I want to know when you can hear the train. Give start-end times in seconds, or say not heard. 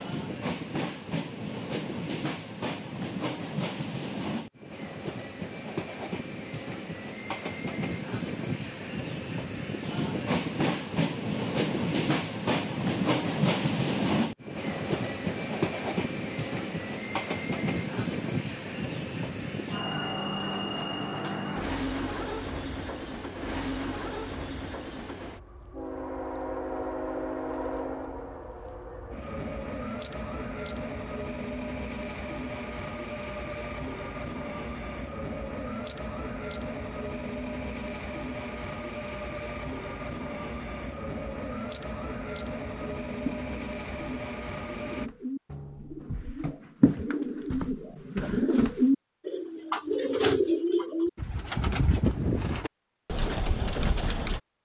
0.0-45.1.